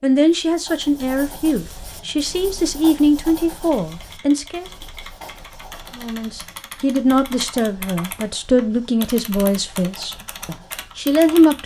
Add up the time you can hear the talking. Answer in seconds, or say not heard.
10 s.